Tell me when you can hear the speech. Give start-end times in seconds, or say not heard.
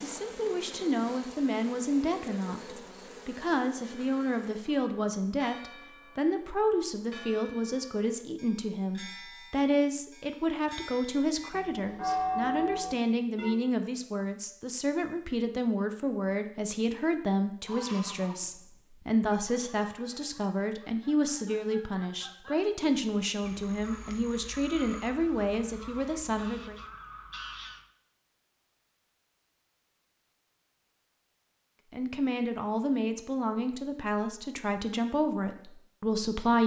0.0-26.8, 31.9-36.6.